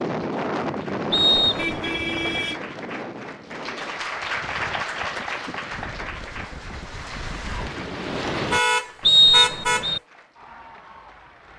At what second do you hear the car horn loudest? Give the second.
9 s.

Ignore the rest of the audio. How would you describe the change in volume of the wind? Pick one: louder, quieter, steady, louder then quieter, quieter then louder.
quieter then louder.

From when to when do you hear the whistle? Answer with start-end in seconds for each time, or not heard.
1.1-1.7, 9.1-10.0.